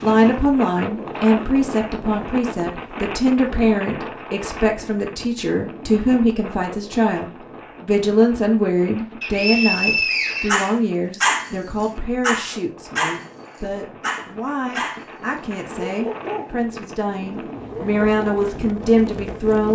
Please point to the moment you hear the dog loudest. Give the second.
11 s.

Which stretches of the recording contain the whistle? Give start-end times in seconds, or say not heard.
9.2-11.2.